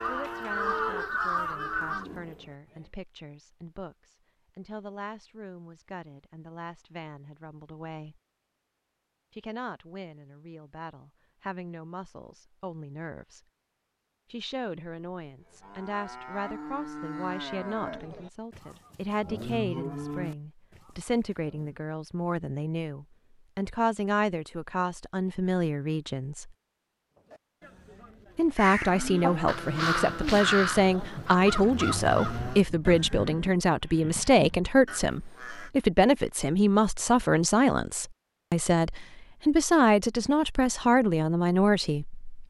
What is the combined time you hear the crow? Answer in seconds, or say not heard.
9 s.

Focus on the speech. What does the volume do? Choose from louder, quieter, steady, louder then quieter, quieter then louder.
louder.